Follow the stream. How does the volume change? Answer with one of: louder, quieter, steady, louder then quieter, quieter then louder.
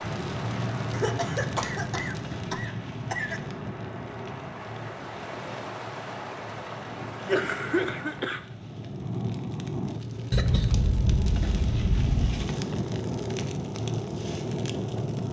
quieter then louder.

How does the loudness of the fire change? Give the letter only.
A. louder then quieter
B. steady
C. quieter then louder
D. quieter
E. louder
C.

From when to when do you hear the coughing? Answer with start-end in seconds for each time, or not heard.
0.9-3.4, 7.2-8.4, 10.3-12.5.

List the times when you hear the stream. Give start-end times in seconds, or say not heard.
0.0-8.4.